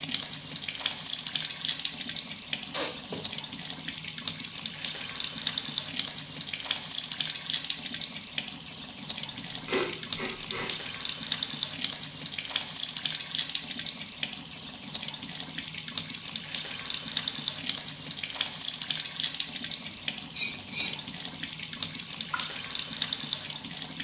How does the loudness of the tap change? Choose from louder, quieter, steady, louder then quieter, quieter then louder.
steady.